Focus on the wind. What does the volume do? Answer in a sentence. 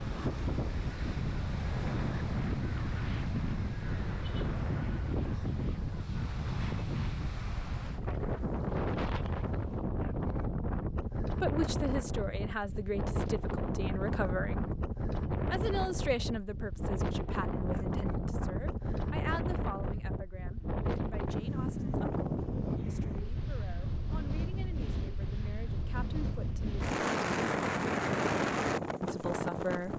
The loudness of the wind stays about the same.